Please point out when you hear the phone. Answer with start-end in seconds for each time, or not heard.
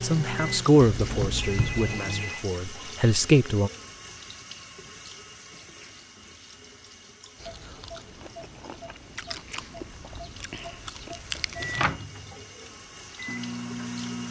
1.2-2.5.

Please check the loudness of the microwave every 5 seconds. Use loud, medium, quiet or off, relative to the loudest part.
loud, off, loud.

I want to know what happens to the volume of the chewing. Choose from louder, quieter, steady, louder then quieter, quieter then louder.
louder.